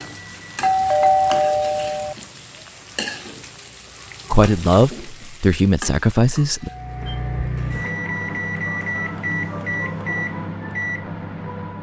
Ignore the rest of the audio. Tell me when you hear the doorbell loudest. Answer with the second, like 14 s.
1 s.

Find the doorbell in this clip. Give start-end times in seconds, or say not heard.
0.6-2.1, 6.6-7.3.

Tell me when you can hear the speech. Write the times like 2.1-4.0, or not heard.
4.3-6.7.